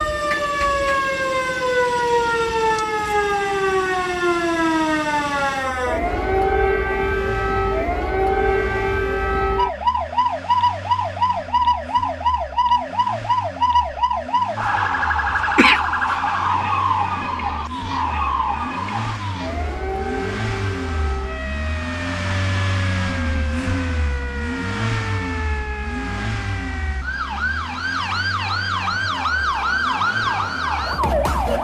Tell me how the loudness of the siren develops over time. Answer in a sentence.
The loudness of the siren goes down, then up.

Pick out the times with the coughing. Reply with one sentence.
You can hear the coughing from 15.6 to 16.2 s.